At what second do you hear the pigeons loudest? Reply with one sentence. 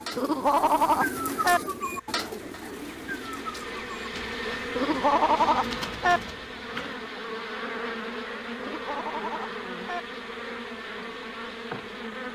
The volume of the pigeons peaks at 1 second.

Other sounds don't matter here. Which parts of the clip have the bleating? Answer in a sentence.
The bleating can be heard from 0.1 to 1.6 s, from 4.8 to 6.2 s and from 8.6 to 10.0 s.